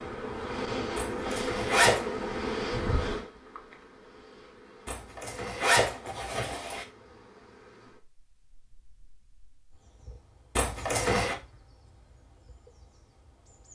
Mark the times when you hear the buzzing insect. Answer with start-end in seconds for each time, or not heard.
0.0-13.7.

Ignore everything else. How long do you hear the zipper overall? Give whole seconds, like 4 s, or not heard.
4 s.